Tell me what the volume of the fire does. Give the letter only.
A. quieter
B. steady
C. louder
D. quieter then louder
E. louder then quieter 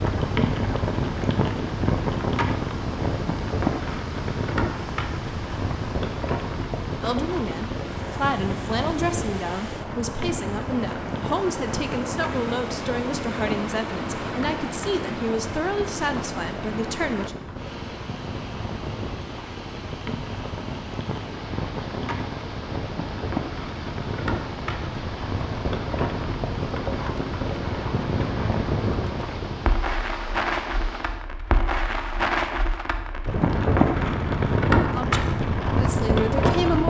D.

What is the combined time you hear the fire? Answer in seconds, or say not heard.
37 s.